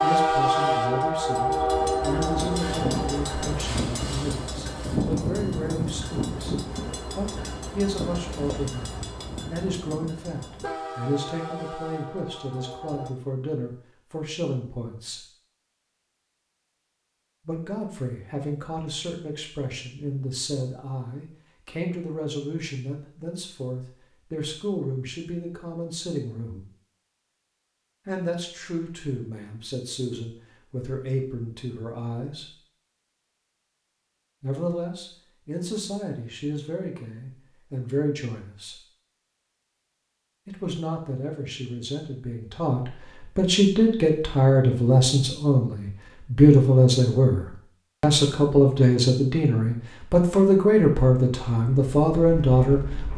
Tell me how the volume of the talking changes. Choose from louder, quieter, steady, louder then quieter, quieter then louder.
louder.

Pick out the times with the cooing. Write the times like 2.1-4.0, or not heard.
not heard.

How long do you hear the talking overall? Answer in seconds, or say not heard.
45 s.